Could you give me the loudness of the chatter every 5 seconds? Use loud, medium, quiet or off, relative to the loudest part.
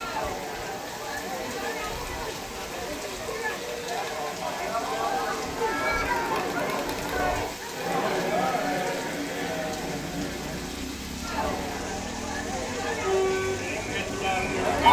medium, loud, loud.